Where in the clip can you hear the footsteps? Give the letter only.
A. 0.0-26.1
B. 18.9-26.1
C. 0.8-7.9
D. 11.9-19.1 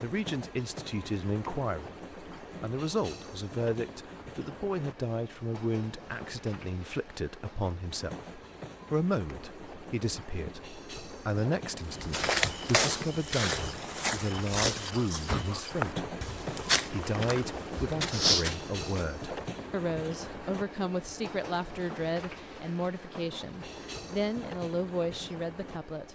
D.